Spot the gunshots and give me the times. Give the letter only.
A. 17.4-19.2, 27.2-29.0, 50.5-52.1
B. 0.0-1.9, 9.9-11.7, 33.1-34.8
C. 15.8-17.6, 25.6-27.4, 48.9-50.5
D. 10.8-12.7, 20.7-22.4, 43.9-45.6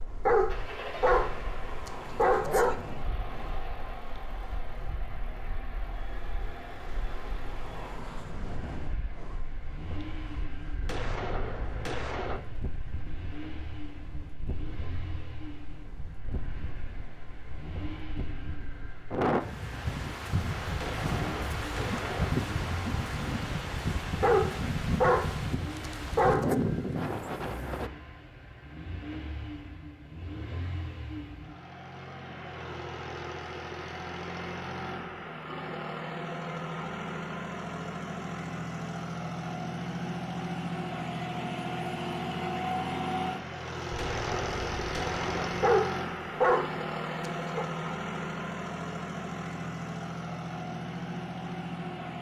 D.